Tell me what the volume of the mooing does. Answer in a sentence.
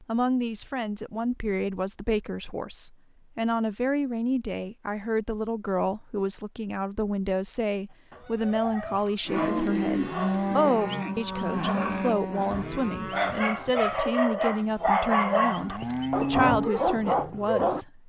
The volume of the mooing goes down, then up.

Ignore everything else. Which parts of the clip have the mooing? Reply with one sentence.
You can hear the mooing from 9.2 to 16.7 s.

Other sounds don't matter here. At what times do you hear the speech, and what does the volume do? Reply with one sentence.
The speech can be heard from 0.0 to 18.0 s, at a steady volume.